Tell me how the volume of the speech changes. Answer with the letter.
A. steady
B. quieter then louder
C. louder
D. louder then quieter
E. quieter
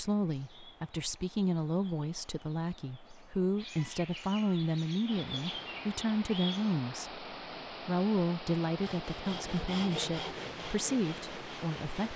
A.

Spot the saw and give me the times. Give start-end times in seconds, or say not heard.
8.8-12.0.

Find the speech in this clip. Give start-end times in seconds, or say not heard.
0.0-12.1.